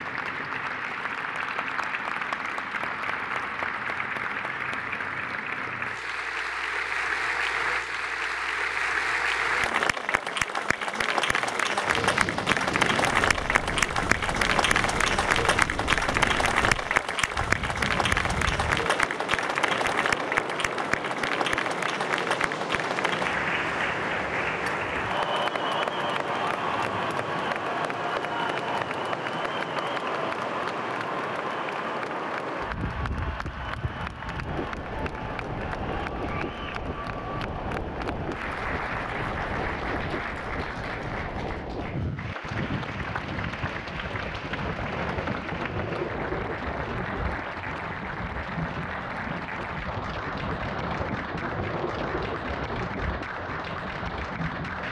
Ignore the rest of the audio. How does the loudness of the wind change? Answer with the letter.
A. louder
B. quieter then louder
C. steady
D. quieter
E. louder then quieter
C.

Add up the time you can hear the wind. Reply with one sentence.
The wind can be heard for 43 seconds in total.